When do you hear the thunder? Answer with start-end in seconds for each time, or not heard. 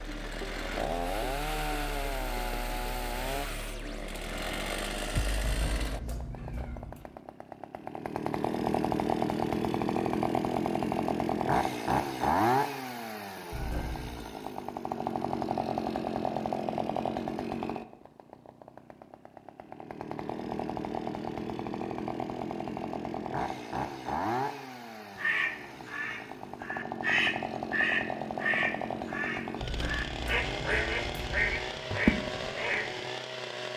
not heard.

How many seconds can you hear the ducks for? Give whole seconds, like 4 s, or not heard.
8 s.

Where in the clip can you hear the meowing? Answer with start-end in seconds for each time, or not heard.
5.4-7.0, 13.5-14.2, 29.6-31.6.